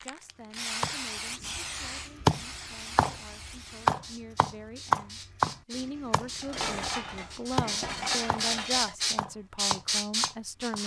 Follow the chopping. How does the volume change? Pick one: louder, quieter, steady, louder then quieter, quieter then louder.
quieter.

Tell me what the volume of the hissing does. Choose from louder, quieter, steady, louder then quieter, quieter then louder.
quieter then louder.